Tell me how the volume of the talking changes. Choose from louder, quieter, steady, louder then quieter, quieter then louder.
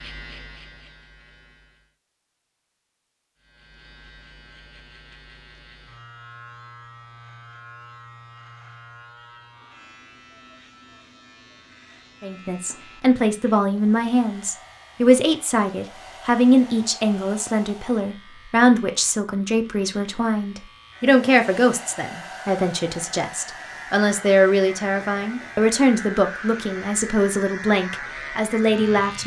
steady.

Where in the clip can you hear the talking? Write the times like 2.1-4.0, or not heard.
12.2-29.2.